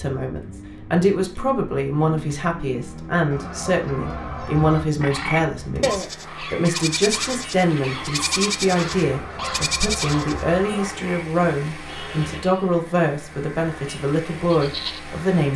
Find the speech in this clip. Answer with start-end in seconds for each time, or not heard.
0.0-15.5.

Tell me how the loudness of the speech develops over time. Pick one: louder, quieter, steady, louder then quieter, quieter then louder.
steady.